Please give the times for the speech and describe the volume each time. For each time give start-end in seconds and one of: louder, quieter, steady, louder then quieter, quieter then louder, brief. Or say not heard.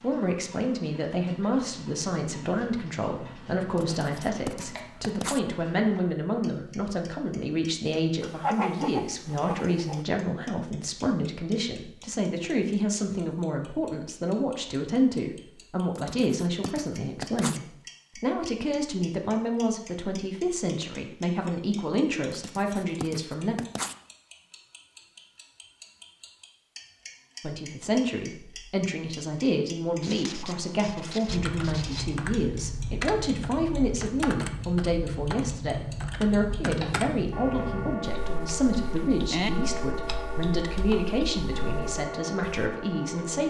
0.0-23.6 steady
27.4-43.4 steady.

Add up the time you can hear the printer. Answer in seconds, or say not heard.
not heard.